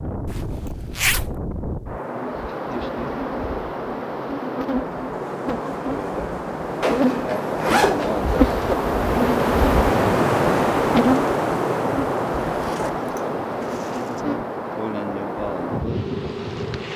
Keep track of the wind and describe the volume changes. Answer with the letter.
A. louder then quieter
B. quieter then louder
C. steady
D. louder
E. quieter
A.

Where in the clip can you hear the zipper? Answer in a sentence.
The zipper can be heard from 0.2 to 1.4 s, from 6.8 to 8.8 s and from 12.4 to 14.2 s.